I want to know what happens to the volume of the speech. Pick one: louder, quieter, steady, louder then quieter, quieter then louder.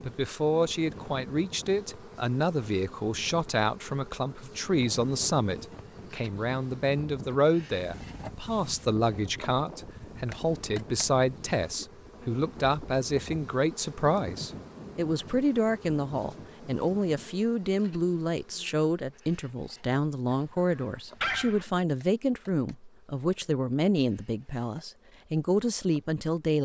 steady.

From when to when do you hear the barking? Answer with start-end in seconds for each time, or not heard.
20.3-21.6.